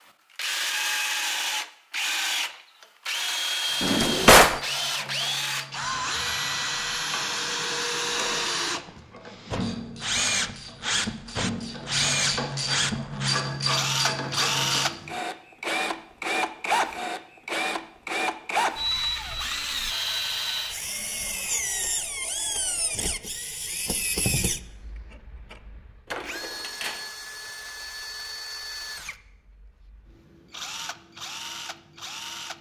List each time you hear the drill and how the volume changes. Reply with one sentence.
The drill can be heard from 0.3 to 32.5 s, getting quieter.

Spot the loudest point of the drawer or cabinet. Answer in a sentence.
The volume of the drawer or cabinet peaks at 4 seconds.